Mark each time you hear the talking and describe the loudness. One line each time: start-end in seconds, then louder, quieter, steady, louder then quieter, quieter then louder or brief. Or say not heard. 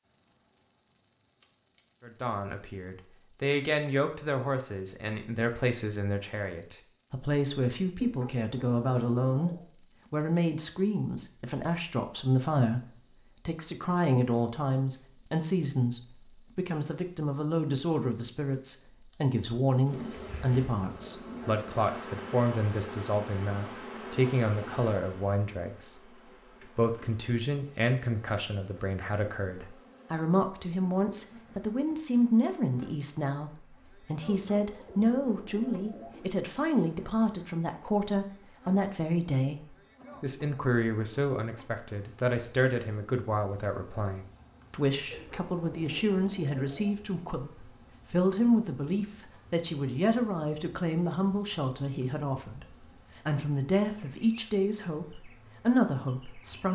2.0-9.5 steady
10.1-56.7 steady.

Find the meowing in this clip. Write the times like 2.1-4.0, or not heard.
not heard.